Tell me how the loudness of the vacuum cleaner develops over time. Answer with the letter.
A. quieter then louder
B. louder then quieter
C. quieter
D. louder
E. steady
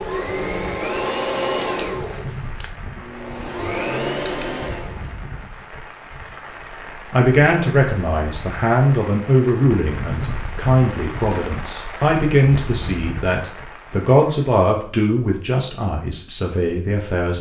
A.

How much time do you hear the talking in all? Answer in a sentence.
You can hear the talking for 10 seconds altogether.